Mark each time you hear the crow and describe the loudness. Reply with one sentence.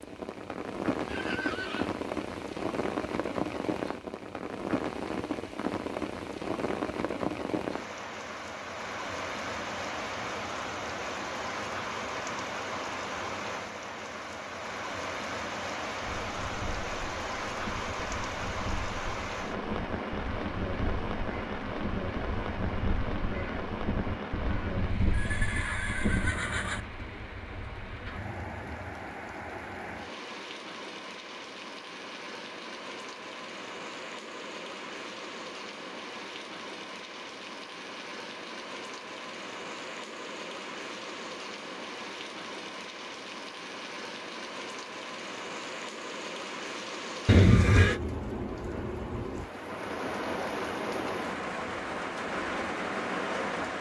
The crow can be heard from 16.1 to 26.4 s, getting louder.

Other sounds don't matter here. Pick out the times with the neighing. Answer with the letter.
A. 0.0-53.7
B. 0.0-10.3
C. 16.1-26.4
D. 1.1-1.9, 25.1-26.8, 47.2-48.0
D.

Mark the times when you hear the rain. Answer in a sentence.
The rain can be heard from 0.0 to 53.7 s.